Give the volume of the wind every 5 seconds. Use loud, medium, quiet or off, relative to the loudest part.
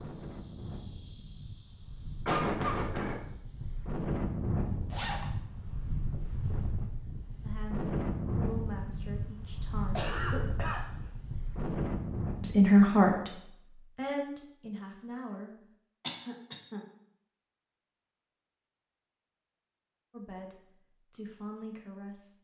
loud, loud, loud, off, off.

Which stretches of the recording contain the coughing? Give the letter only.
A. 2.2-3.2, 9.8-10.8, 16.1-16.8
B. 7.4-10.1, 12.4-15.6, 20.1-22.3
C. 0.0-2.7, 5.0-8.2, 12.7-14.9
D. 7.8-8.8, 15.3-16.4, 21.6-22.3
A.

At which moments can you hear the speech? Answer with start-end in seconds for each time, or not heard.
7.4-10.1, 12.4-15.6, 20.1-22.3.